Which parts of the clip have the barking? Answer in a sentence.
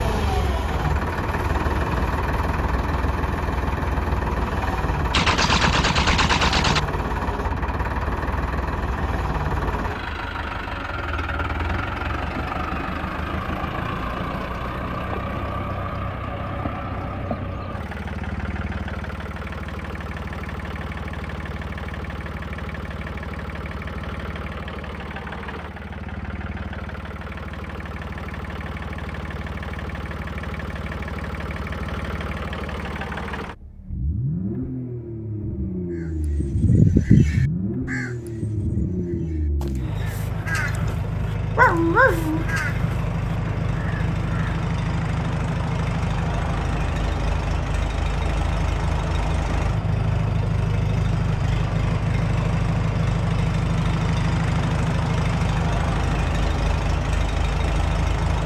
The barking can be heard from 41.1 to 42.5 s.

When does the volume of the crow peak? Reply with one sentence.
The loudest moment of the crow is at 37 seconds.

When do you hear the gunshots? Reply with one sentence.
The gunshots can be heard from 5.1 to 6.8 s.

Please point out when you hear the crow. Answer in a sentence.
You can hear the crow from 36.0 to 44.5 s.